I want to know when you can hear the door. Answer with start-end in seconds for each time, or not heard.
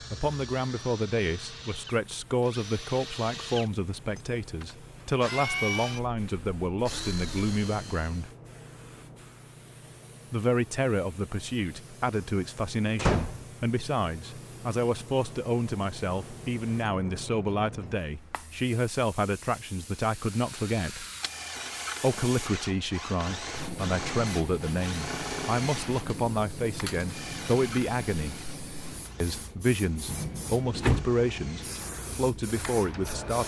12.9-13.4, 30.1-31.1.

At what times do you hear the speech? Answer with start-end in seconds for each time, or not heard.
0.1-8.3, 10.3-21.1, 22.0-28.4, 29.2-33.4.